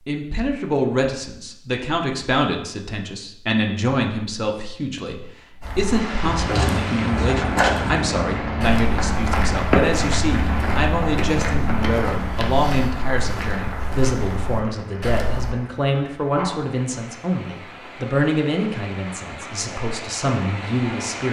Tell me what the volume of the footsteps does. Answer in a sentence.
The volume of the footsteps goes down.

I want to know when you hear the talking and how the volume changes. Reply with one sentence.
The talking can be heard from 0.1 to 21.2 s, at a steady volume.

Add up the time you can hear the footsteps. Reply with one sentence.
You can hear the footsteps for 10 seconds altogether.